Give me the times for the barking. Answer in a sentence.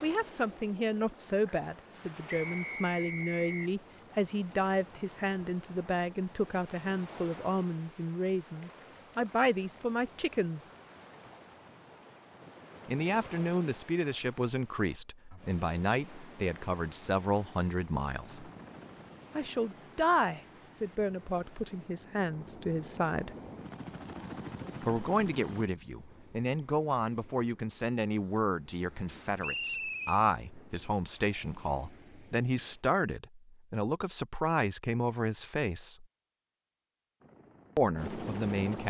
You can't hear the barking here.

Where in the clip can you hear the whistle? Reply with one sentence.
You can hear the whistle from 2.2 to 3.7 s and from 29.4 to 30.2 s.